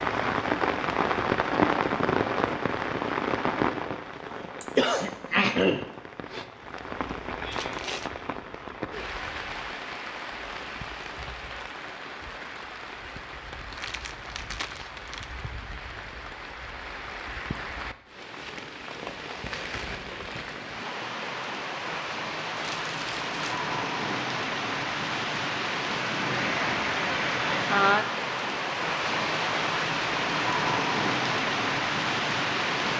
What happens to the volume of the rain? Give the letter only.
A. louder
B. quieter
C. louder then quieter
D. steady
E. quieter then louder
E.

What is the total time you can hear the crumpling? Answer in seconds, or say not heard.
3 s.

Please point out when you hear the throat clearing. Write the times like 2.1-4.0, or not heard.
4.6-5.5.